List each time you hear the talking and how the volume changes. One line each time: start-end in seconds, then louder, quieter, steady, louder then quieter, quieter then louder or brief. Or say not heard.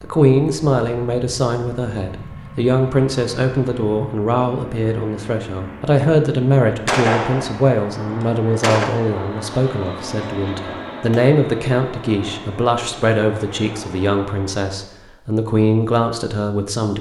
0.0-16.9 steady.